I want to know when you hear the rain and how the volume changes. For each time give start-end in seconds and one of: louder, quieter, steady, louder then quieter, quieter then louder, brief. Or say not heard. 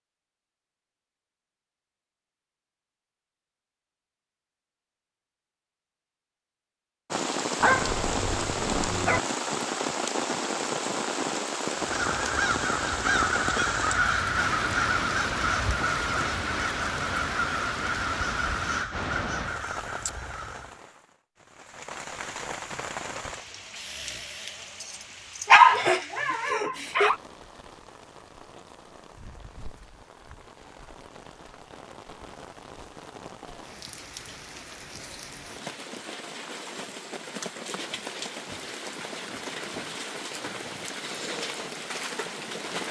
7.1-42.8 quieter then louder.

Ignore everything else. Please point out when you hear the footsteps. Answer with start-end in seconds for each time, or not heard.
not heard.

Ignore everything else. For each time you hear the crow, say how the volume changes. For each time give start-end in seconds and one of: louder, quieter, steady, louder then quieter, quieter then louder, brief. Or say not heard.
11.8-20.8 quieter.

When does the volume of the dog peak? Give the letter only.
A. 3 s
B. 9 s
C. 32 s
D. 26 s
D.